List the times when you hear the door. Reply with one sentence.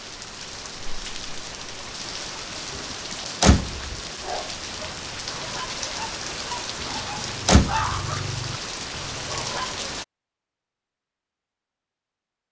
You can hear the door from 2.8 to 4.0 s and from 6.8 to 7.9 s.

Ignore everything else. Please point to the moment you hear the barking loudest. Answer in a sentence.
The volume of the barking peaks at 8 seconds.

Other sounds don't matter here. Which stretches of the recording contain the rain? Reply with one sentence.
You can hear the rain from 0.0 to 10.1 s.